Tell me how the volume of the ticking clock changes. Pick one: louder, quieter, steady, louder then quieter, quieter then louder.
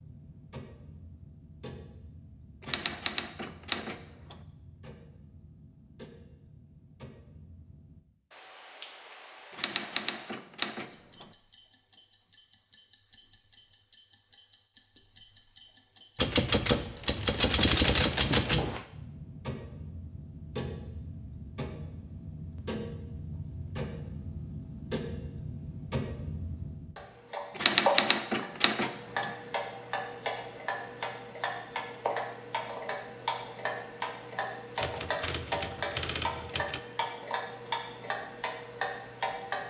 louder.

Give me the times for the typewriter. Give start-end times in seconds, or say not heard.
2.6-4.4, 9.5-11.3, 16.1-18.9, 27.6-29.3, 34.8-36.8.